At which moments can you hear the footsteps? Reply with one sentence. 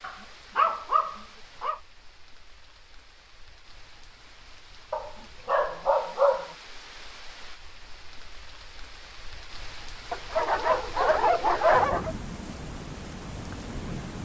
The footsteps can't be heard in this clip.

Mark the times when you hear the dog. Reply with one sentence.
You can hear the dog from 0.0 to 1.8 s, from 4.9 to 6.5 s and from 10.1 to 12.2 s.